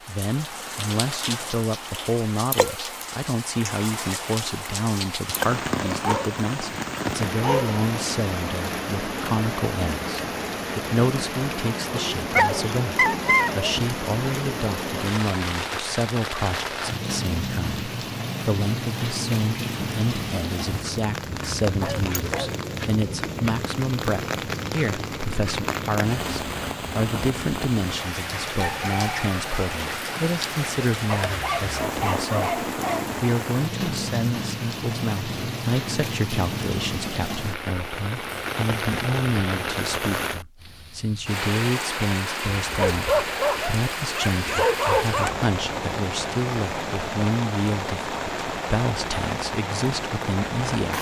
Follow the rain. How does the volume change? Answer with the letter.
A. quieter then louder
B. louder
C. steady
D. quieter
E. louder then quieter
C.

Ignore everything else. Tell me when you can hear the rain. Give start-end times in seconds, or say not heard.
0.0-50.9.